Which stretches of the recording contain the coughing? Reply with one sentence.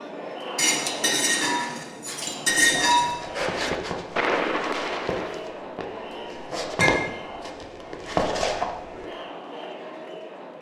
You can't hear the coughing here.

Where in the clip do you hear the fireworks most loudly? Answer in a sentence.
The volume of the fireworks peaks at 4 seconds.